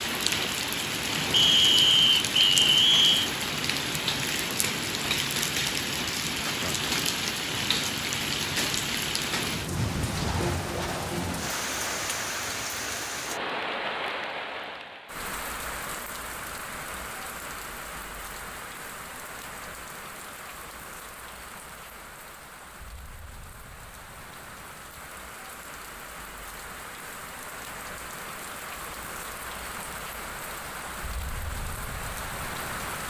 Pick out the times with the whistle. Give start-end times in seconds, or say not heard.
1.3-3.3.